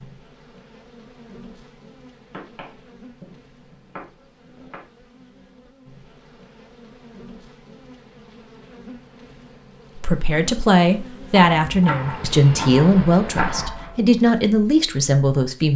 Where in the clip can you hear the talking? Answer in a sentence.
You can hear the talking from 9.9 to 15.7 s.